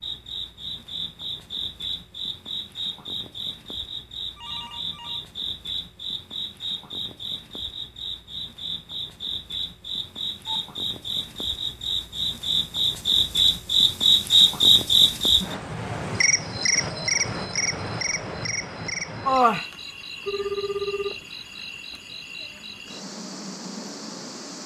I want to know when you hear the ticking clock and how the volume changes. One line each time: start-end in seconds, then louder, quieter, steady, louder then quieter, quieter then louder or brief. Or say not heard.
not heard.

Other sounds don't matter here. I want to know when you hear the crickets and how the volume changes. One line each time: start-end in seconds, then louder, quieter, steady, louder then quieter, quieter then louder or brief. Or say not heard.
0.0-24.6 louder then quieter.